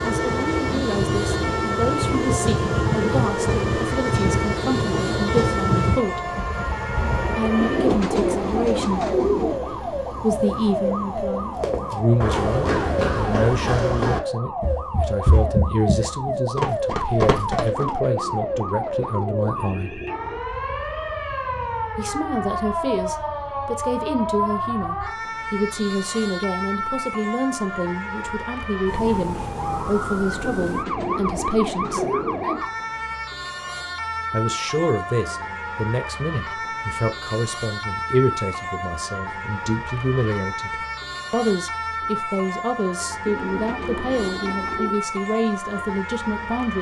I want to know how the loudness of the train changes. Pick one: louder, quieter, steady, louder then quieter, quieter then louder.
quieter.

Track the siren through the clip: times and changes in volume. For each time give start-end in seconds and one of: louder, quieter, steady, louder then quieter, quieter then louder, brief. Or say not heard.
0.0-46.7 steady.